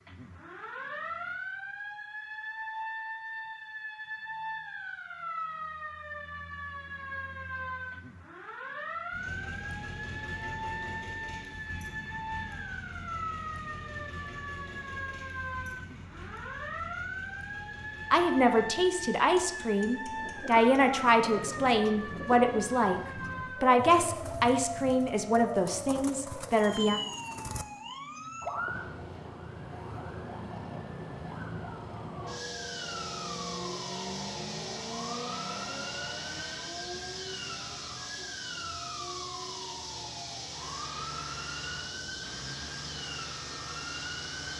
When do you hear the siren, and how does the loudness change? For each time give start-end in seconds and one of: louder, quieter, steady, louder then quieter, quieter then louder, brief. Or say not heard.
0.0-44.5 steady.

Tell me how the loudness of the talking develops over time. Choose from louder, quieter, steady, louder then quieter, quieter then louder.
steady.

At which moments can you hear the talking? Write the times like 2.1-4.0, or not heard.
18.1-23.0, 23.6-27.0.